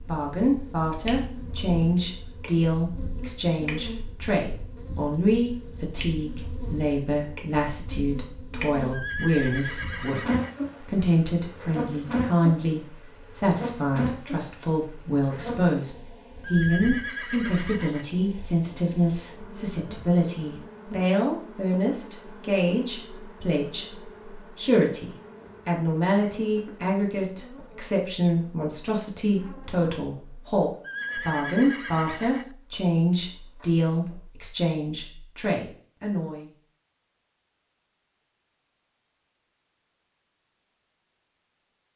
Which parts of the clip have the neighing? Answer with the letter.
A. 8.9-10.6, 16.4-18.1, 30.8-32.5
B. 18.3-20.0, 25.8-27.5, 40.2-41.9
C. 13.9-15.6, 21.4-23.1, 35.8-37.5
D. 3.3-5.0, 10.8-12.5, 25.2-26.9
A.